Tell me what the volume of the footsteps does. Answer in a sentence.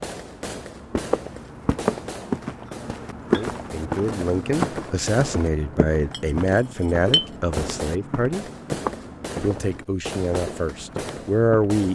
The loudness of the footsteps goes down.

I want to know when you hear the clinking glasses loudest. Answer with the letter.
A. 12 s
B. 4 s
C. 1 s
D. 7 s
D.